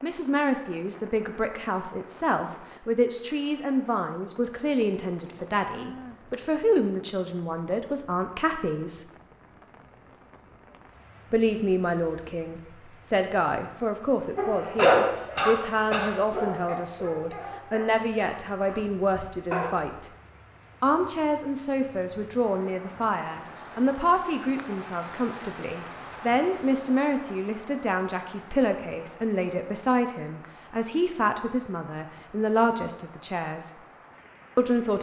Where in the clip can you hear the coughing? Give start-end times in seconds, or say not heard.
14.6-16.1.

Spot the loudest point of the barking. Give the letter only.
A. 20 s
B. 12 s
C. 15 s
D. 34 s
C.